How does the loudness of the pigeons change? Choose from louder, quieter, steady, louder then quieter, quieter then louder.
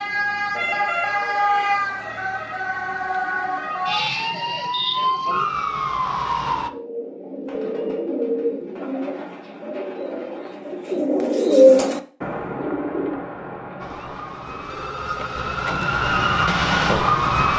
louder then quieter.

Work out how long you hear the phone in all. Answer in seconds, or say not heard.
3 s.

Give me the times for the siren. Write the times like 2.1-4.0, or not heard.
0.0-6.7, 13.8-17.5.